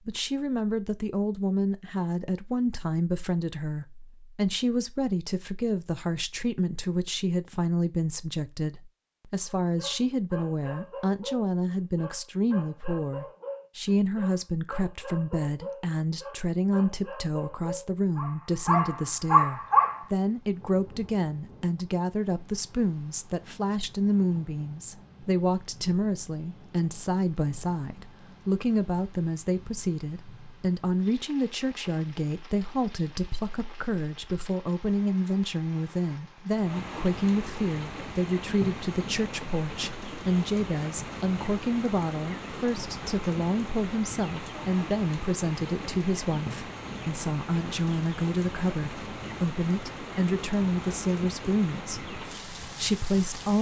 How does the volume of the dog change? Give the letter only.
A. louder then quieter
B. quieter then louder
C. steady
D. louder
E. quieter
D.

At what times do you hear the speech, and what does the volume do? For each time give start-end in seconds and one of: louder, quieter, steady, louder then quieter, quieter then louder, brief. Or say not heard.
0.1-53.5 steady.